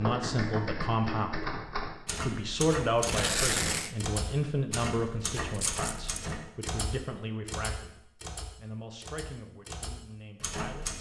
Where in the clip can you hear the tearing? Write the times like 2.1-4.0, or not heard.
3.0-3.9, 5.5-6.2.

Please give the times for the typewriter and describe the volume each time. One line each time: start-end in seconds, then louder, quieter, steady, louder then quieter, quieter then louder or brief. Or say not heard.
0.0-10.9 quieter.